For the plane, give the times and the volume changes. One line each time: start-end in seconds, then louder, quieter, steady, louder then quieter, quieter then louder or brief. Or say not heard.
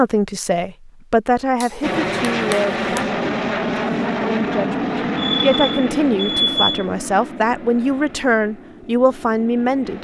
1.8-9.9 quieter.